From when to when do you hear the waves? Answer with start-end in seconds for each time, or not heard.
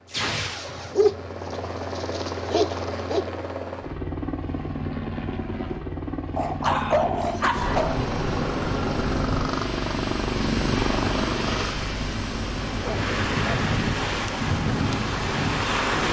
7.5-16.0.